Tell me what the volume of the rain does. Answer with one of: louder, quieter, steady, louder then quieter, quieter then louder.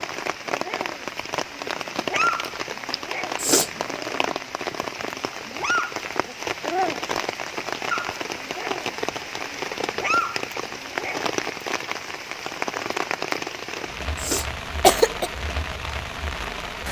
steady.